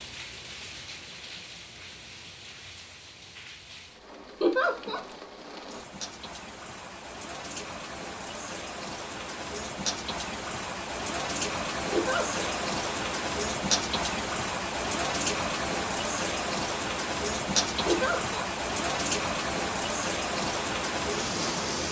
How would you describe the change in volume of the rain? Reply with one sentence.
The volume of the rain goes up.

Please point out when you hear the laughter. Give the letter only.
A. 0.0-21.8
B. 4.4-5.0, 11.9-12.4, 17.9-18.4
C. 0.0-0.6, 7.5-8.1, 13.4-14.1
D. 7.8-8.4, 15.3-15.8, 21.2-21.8
B.